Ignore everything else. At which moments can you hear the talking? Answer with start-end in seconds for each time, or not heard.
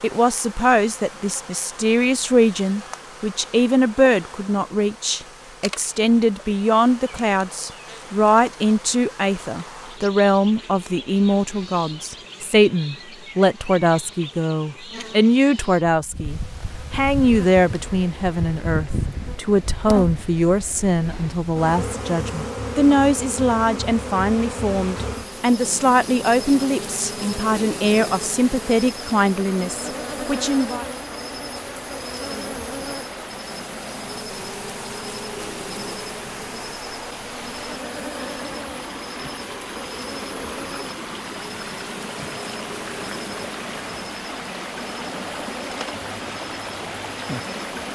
0.0-30.9.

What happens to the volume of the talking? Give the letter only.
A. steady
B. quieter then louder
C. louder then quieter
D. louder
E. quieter
A.